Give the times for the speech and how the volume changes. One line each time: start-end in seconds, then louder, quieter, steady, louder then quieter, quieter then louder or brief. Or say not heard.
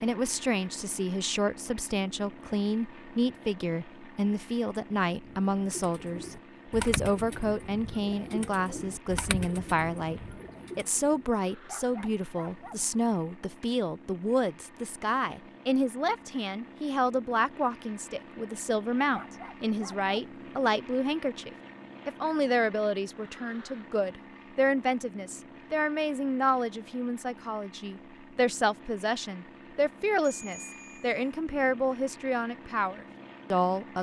0.0-33.9 steady.